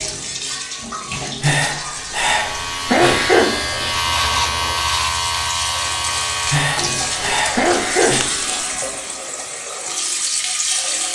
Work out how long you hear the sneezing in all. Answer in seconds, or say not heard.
2 s.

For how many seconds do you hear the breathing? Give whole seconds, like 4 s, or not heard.
4 s.